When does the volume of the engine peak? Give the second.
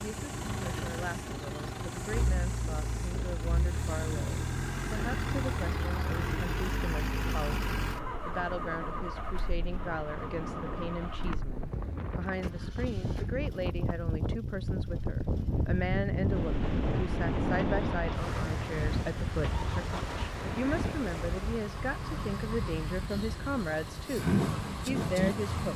25 s.